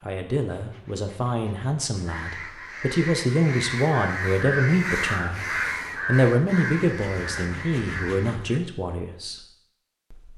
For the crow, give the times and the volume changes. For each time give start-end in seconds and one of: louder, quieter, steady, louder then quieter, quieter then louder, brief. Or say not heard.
2.0-8.6 louder then quieter.